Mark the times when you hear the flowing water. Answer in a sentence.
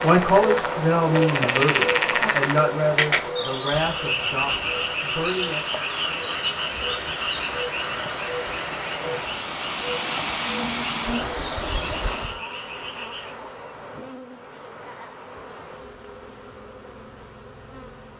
The flowing water can be heard from 0.0 to 12.4 s.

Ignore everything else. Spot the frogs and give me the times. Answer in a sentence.
You can hear the frogs from 0.0 to 13.3 s.